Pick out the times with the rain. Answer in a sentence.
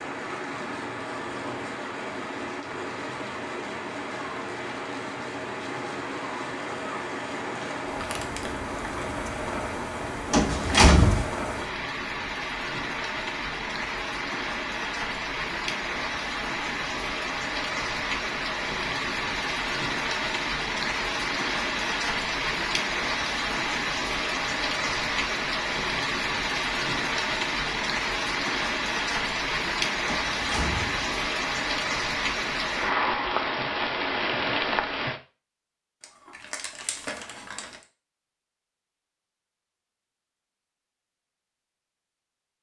The rain can be heard from 0.0 to 35.2 s.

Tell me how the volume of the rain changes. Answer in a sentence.
The loudness of the rain goes up.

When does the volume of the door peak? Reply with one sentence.
The loudest moment of the door is at 11 seconds.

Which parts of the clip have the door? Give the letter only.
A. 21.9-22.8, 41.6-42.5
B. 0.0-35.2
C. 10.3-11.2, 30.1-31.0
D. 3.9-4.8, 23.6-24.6
C.